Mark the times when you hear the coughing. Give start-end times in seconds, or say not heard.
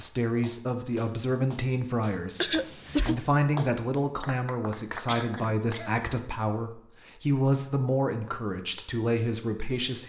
2.4-3.1, 5.0-6.1.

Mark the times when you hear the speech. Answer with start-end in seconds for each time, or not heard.
0.0-10.0.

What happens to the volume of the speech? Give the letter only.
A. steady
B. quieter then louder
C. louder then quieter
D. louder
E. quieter
A.